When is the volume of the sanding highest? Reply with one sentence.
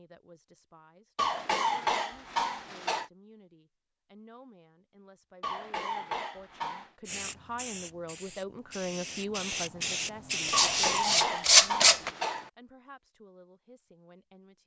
The volume of the sanding peaks at 12 seconds.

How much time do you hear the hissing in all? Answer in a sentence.
You can hear the hissing for 4 seconds altogether.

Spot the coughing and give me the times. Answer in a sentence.
You can hear the coughing from 1.1 to 3.1 s, from 5.4 to 6.9 s and from 10.5 to 12.5 s.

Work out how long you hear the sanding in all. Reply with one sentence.
You can hear the sanding for 2 seconds altogether.